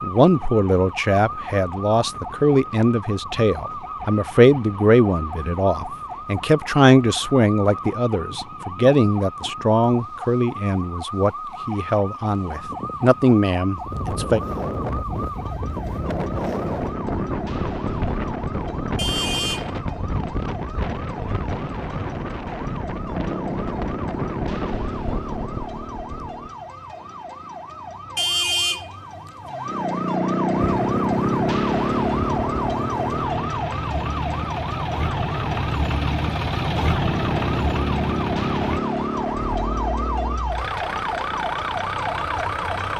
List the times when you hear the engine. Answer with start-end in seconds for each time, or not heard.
30.6-42.9.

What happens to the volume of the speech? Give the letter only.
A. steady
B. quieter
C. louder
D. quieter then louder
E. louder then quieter
A.